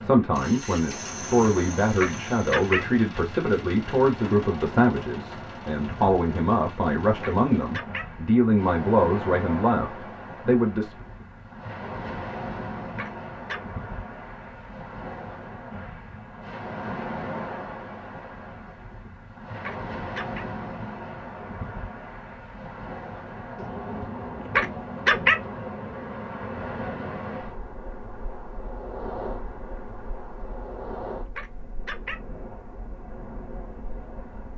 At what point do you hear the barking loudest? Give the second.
25 s.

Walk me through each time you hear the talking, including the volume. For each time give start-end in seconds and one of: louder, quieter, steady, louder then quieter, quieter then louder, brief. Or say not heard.
0.0-10.9 steady.